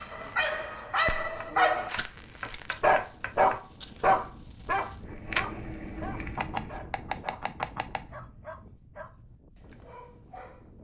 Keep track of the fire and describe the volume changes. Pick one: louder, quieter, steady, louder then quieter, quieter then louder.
quieter then louder.